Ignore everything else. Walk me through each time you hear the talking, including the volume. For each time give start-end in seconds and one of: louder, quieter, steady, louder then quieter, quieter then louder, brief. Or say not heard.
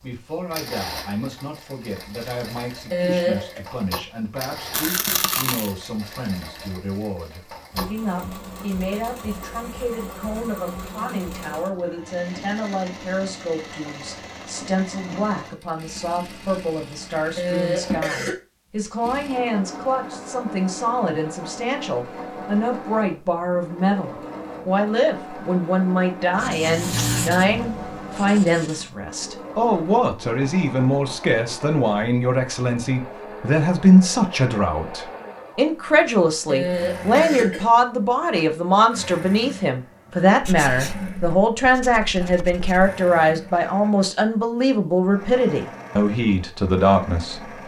0.0-47.4 louder.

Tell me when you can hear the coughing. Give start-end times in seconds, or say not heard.
2.9-3.6, 17.4-18.4, 36.5-37.7.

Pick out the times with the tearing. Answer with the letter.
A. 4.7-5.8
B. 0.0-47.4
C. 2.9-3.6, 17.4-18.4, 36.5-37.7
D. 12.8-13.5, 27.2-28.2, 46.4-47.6
A.